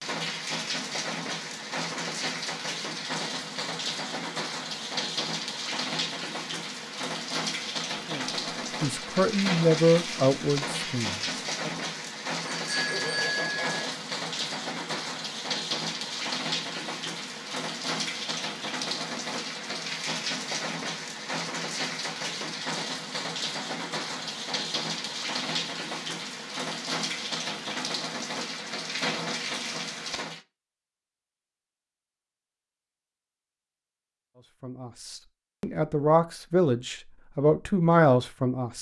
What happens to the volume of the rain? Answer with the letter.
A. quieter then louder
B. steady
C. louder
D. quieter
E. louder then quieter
B.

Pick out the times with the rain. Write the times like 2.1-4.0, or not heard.
0.0-30.4.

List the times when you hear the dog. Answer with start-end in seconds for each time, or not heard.
not heard.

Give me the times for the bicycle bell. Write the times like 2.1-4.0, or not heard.
12.6-13.9.